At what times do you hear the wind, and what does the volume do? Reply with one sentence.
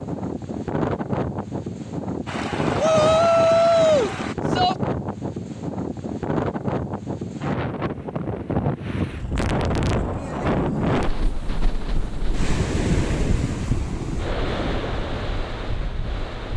You can hear the wind from 0.0 to 16.5 s, at a steady volume.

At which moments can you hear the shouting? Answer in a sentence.
The shouting can be heard from 2.8 to 4.8 s.